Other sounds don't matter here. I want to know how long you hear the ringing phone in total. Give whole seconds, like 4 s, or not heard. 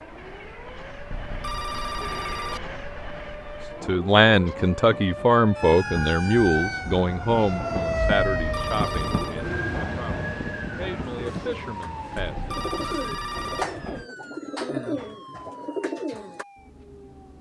4 s.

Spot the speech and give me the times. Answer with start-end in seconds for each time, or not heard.
3.8-12.4.